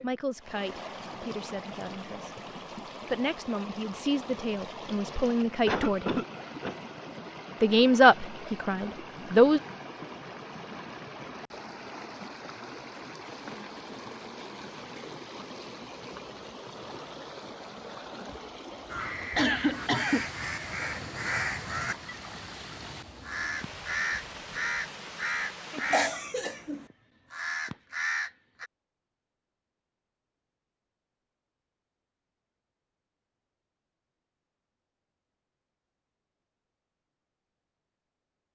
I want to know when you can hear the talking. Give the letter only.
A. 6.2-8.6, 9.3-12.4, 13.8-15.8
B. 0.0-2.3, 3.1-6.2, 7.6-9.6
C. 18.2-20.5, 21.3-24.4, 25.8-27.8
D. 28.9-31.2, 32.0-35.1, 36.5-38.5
B.